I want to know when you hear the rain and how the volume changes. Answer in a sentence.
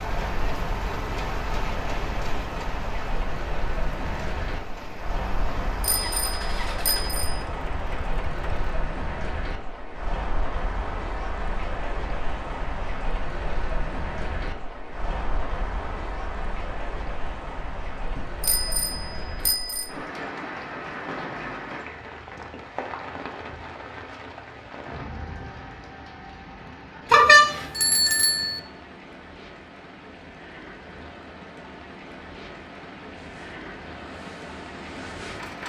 You can hear the rain from 0.0 to 35.6 s, getting quieter.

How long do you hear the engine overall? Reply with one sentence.
You can hear the engine for 11 seconds altogether.